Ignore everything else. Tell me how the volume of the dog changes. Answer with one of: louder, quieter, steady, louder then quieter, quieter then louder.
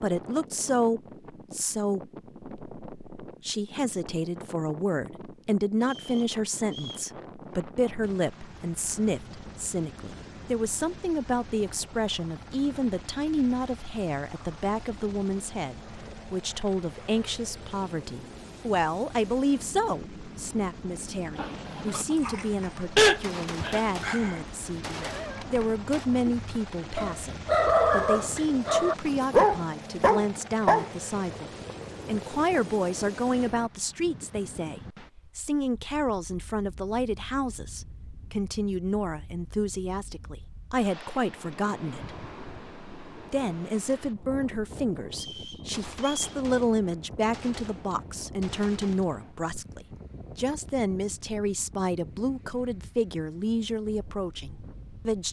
quieter then louder.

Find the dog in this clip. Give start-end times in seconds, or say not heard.
21.4-30.9.